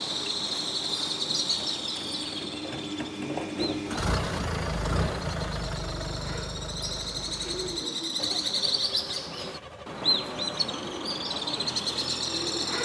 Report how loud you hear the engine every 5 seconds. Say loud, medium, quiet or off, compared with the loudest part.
loud, loud, medium.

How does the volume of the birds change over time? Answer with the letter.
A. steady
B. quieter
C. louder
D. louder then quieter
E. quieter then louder
E.